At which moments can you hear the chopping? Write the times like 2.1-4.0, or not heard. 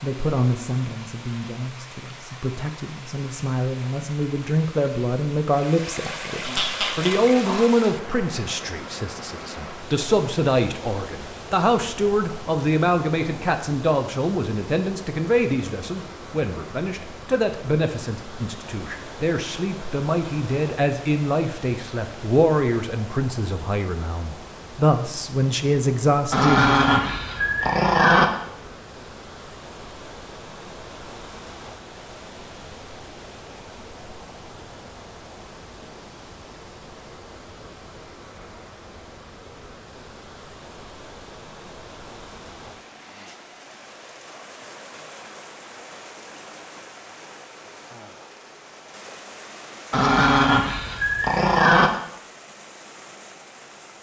not heard.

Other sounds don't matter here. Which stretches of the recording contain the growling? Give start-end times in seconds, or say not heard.
6.4-7.7, 26.3-28.2, 49.9-51.9.